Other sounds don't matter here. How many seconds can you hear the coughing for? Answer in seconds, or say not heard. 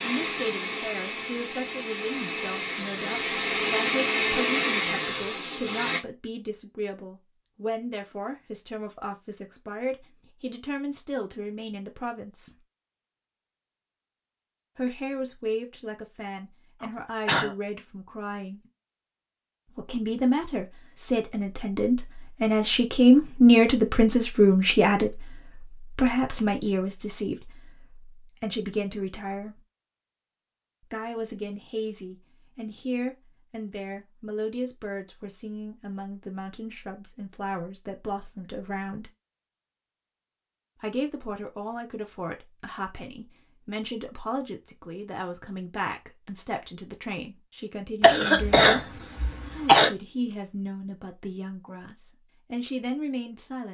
3 s.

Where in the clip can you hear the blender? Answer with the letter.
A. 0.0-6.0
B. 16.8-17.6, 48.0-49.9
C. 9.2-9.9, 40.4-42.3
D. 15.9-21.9
A.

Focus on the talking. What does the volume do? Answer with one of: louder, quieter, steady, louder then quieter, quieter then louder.
louder then quieter.